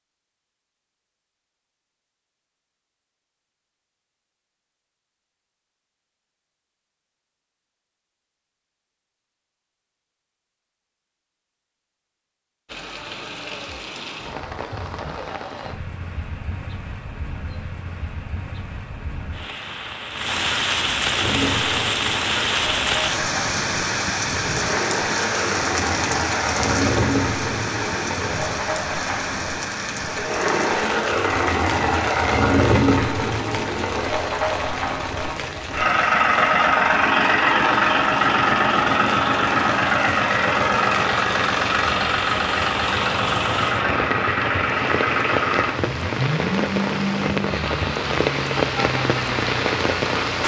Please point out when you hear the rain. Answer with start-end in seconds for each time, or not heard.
12.7-50.4.